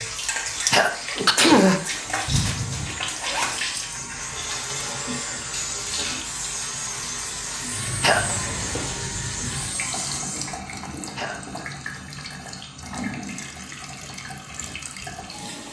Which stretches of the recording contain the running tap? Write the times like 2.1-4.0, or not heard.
0.0-15.6.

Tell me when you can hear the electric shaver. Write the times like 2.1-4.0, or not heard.
0.0-10.6.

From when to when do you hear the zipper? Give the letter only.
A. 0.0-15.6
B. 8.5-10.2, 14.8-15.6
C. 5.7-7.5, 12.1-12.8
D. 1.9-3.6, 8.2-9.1
D.